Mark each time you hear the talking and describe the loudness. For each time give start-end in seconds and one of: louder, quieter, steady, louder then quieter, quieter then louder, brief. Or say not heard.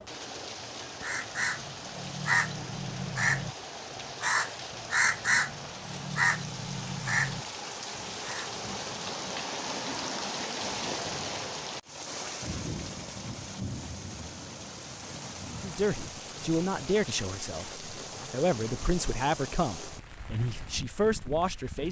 15.6-21.8 quieter then louder.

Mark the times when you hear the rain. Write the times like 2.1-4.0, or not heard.
0.0-21.8.